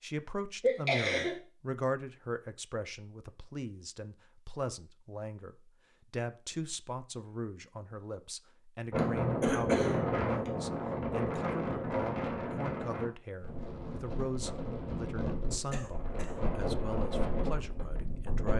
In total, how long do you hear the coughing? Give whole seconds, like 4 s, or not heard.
3 s.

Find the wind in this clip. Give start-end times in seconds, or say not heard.
8.9-18.5.